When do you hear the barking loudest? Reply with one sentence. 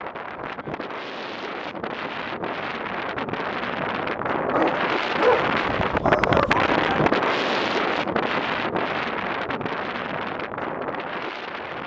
The volume of the barking peaks at 5 seconds.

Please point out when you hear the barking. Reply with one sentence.
You can hear the barking from 4.5 to 6.5 s.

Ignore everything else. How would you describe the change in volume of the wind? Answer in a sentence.
The volume of the wind goes up, then down.